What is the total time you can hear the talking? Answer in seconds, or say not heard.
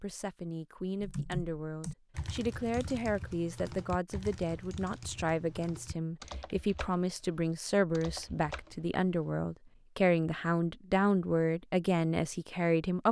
13 s.